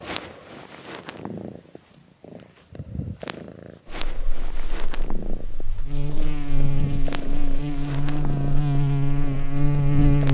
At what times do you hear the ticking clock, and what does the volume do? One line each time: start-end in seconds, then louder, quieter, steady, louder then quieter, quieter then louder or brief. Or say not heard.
not heard.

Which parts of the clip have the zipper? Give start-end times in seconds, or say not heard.
not heard.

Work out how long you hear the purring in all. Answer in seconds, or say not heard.
10 s.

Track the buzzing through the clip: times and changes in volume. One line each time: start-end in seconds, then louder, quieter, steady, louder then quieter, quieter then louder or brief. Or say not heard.
4.0-10.2 louder.